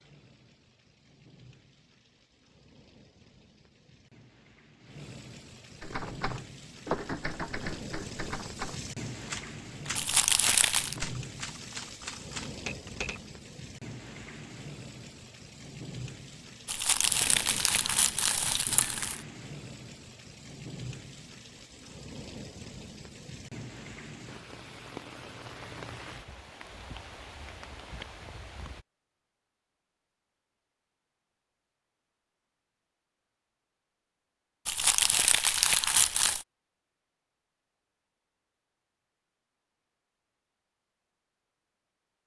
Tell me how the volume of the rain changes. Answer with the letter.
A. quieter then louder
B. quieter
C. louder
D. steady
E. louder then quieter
C.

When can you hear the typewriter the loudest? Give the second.
7 s.